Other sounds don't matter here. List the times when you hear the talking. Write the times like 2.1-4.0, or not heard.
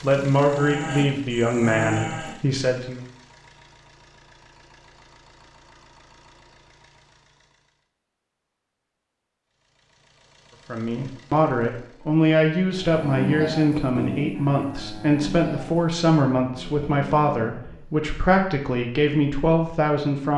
0.0-3.0, 10.7-20.3.